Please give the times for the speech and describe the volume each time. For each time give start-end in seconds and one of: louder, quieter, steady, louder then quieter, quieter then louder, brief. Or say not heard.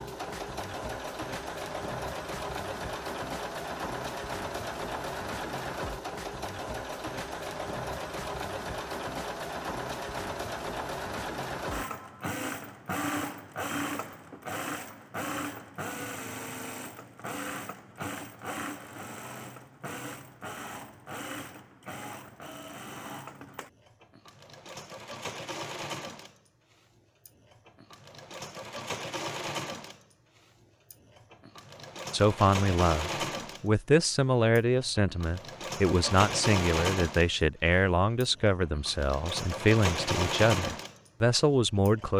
32.1-42.1 steady.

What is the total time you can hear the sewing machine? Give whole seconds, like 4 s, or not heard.
42 s.